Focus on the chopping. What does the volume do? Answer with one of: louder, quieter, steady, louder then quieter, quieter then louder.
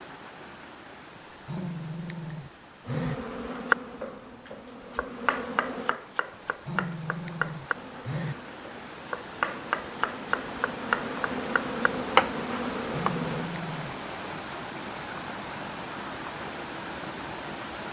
quieter then louder.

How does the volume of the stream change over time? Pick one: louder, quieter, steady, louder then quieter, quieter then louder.
louder.